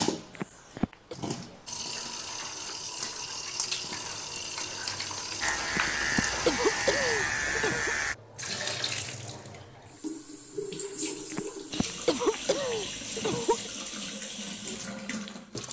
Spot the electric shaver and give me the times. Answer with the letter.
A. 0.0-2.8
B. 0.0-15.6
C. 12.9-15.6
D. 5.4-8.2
D.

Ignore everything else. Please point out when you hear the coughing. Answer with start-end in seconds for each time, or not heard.
0.3-1.1, 5.7-8.0, 11.3-13.7.